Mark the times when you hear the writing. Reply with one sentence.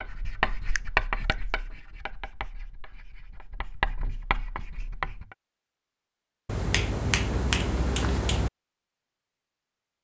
The writing can be heard from 0.0 to 5.2 s.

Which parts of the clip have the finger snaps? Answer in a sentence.
You can hear the finger snaps from 0.8 to 1.4 s and from 6.5 to 8.5 s.